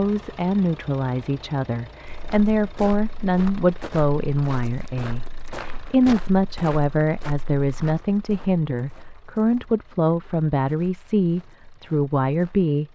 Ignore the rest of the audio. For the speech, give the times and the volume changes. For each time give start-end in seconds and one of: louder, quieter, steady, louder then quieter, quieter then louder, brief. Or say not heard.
0.0-12.8 steady.